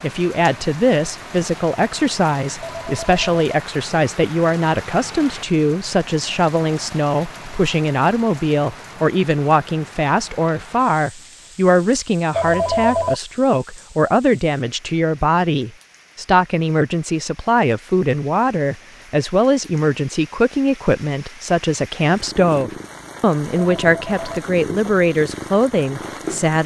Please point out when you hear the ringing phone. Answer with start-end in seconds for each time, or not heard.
2.6-3.4, 12.3-13.2, 23.6-24.4.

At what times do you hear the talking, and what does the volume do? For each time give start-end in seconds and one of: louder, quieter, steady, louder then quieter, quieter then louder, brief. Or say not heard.
0.0-26.6 steady.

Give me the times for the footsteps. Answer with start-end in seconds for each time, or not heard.
not heard.